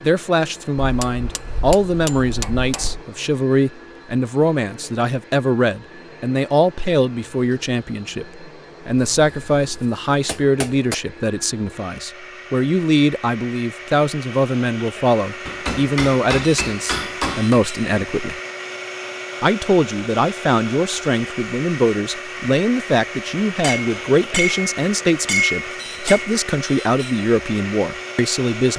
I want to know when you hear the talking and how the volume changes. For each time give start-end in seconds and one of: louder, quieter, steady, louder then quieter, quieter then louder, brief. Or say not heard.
0.0-18.4 steady
19.4-28.7 steady.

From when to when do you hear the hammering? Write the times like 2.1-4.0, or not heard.
0.8-3.0, 9.2-10.9, 15.4-17.6, 23.6-26.4.